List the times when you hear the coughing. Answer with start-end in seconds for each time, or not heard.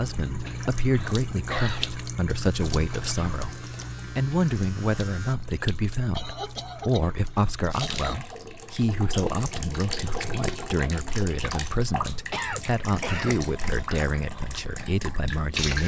0.4-2.0, 6.2-8.2, 12.3-13.4.